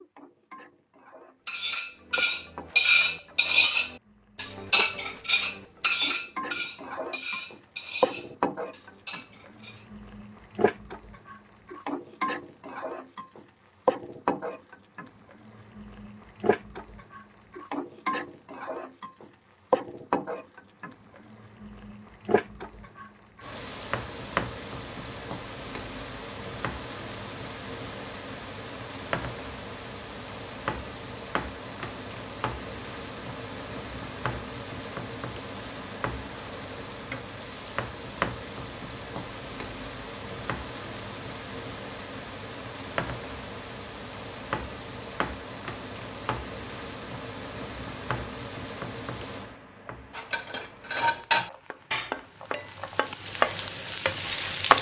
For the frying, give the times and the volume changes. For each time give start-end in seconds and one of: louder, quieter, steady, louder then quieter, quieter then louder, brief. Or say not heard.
0.0-54.7 steady.